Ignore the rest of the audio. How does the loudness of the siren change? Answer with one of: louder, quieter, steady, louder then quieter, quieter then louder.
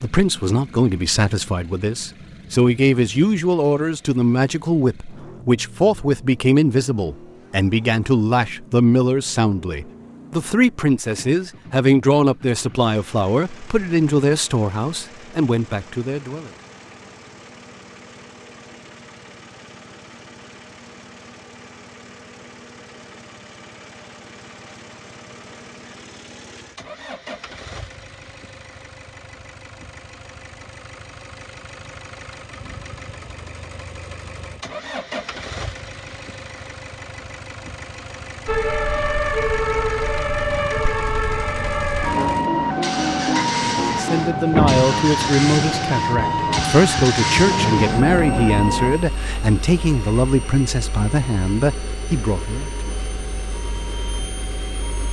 quieter.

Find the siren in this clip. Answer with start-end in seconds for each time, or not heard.
38.5-55.0.